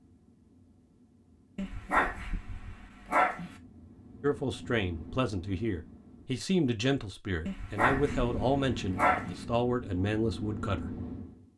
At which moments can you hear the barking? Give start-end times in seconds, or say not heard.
1.6-3.5, 7.5-9.4.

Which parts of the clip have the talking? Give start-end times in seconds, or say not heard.
4.2-10.9.